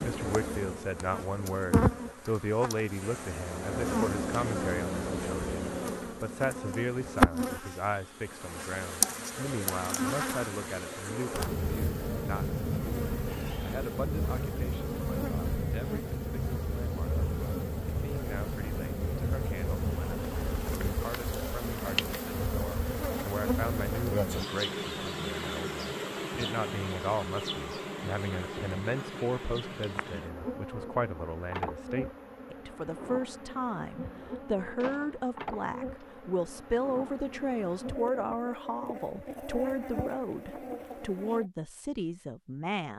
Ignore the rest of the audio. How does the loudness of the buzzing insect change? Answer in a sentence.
The loudness of the buzzing insect goes down.